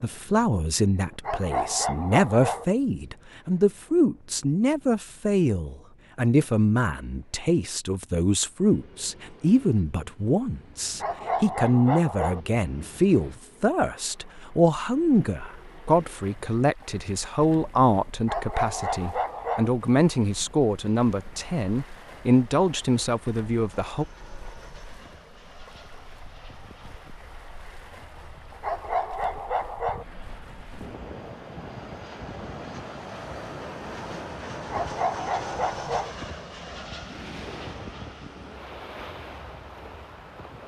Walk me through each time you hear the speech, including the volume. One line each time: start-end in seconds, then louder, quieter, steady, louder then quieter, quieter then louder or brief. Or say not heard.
0.0-24.1 steady.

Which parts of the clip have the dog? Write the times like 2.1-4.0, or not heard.
1.2-2.6, 11.0-12.4, 18.2-19.7, 28.6-30.1, 34.7-36.1.